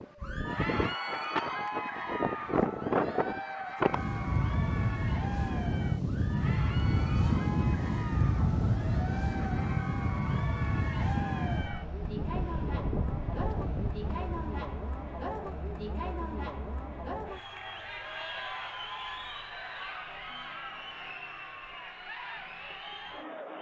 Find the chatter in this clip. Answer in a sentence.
You can hear the chatter from 0.1 to 23.5 s.